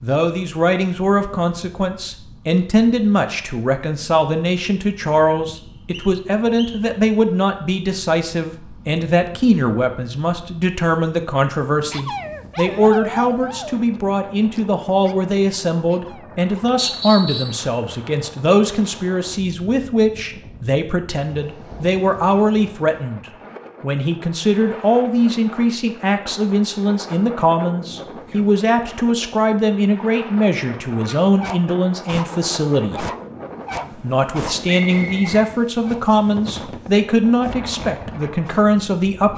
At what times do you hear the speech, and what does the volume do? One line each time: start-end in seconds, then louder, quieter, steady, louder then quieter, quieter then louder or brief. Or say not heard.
0.0-33.0 steady
34.0-39.3 steady.